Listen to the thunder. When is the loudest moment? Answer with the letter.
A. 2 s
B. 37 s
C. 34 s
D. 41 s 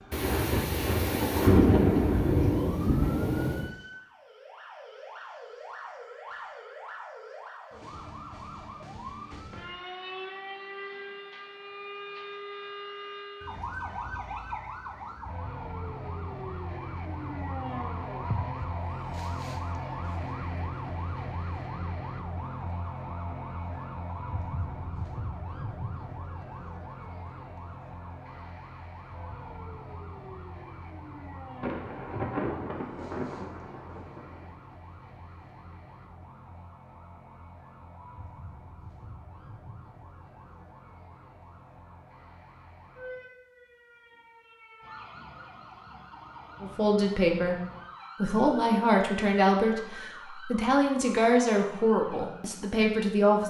A.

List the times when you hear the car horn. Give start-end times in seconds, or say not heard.
not heard.